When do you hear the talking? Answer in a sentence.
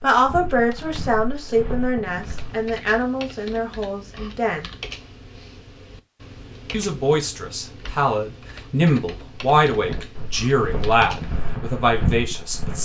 You can hear the talking from 0.0 to 4.7 s and from 6.7 to 12.7 s.